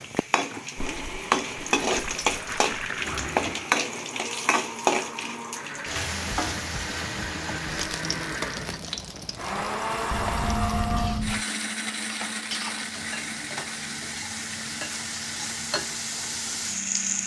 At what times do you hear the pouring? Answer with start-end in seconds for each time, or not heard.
0.8-3.4, 10.1-11.4.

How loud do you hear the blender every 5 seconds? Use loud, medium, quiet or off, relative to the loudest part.
medium, loud, loud, medium.